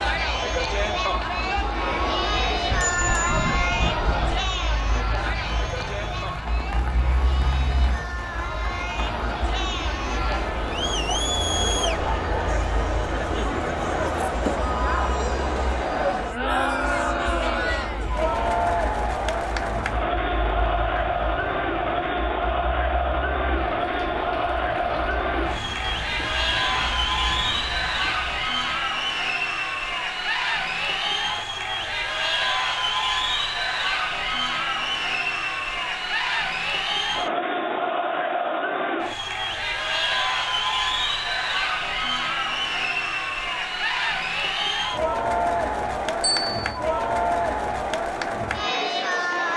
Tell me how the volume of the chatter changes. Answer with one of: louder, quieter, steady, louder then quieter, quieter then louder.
steady.